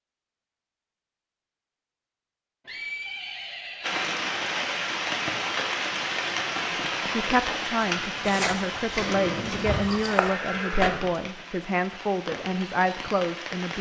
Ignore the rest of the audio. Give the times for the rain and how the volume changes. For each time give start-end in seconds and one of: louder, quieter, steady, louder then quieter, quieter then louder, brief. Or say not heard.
3.8-13.7 quieter.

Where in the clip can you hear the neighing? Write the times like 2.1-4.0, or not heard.
2.6-4.0, 8.9-11.0.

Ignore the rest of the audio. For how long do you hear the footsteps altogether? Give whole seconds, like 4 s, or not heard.
3 s.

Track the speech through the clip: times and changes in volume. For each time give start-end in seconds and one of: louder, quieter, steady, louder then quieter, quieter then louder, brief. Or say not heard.
6.7-13.7 steady.